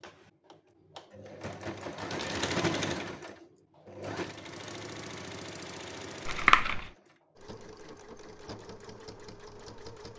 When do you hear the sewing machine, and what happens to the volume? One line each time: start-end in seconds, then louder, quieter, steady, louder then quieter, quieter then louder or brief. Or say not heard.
0.0-10.1 louder then quieter.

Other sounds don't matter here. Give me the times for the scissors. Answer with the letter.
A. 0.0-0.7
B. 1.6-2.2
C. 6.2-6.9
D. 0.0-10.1
C.